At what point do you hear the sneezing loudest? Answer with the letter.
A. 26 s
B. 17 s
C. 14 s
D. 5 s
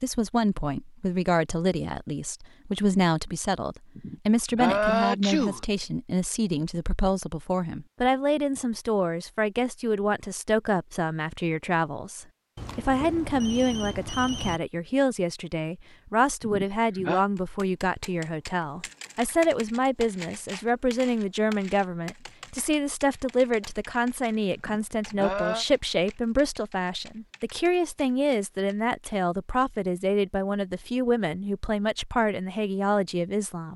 D.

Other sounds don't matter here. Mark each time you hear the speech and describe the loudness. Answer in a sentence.
You can hear the speech from 0.0 to 33.7 s, at a steady volume.